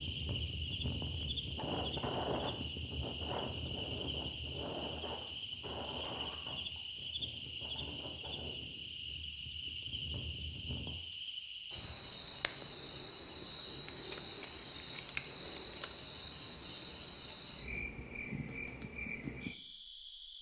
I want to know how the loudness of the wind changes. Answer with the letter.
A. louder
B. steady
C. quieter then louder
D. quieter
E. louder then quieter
D.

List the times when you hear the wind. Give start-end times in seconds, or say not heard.
0.0-10.9.